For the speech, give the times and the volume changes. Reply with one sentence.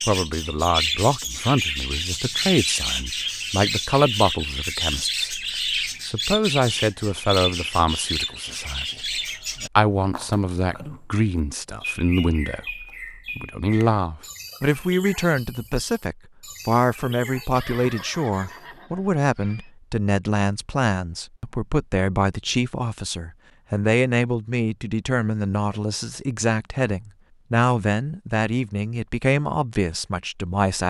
The speech can be heard from 0.0 to 30.8 s, at a steady volume.